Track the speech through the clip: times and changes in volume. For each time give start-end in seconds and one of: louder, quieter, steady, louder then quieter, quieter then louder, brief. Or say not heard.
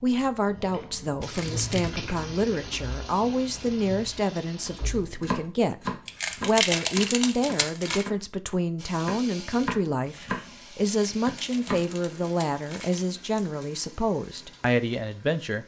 0.0-15.6 steady.